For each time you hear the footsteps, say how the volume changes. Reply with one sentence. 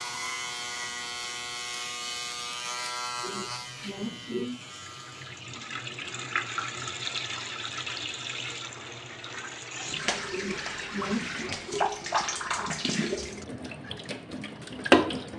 You can't hear the footsteps here.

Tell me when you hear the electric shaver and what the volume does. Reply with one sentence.
The electric shaver can be heard from 0.0 to 5.5 s, getting quieter.